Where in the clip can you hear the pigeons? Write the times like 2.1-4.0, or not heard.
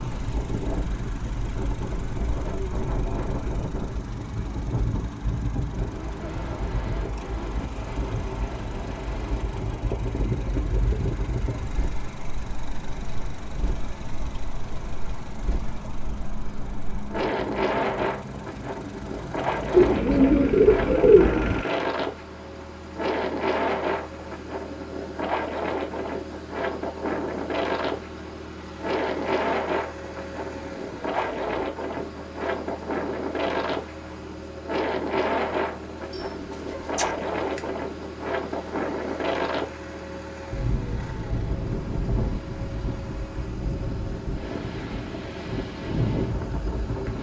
19.7-21.6, 36.1-37.7.